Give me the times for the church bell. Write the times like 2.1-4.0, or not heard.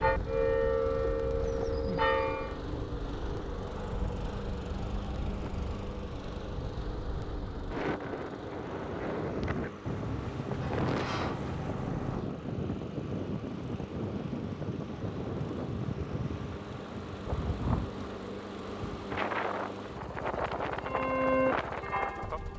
0.0-2.6, 20.9-22.5.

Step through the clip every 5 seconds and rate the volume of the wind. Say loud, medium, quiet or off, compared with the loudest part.
medium, loud, loud, loud, loud.